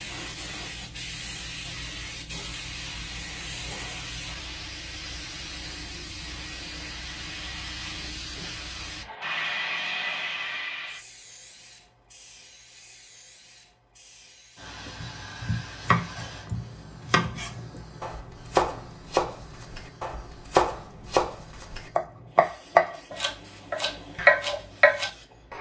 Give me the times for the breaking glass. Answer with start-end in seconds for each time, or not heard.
not heard.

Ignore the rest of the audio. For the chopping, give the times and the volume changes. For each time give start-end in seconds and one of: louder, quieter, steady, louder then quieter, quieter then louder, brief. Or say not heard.
14.8-25.5 louder.